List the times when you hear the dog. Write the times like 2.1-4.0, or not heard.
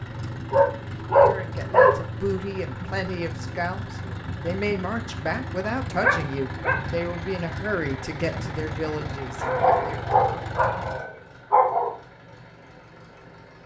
0.5-1.9, 5.9-6.8, 9.4-11.9.